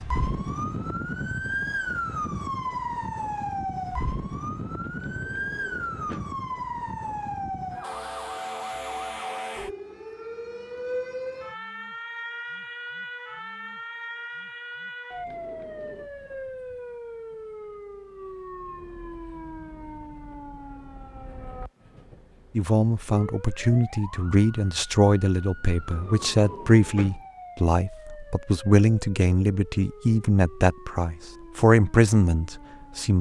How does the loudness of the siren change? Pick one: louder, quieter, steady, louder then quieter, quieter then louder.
quieter.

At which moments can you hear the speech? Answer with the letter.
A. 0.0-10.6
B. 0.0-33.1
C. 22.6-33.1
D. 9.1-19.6
C.